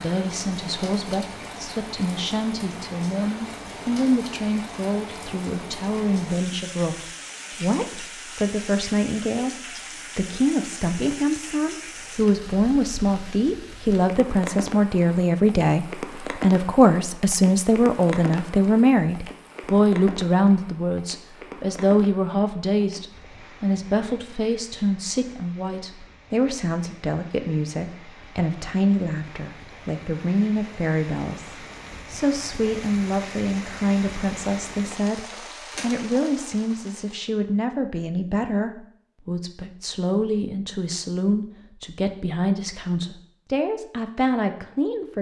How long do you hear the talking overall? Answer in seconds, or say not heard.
45 s.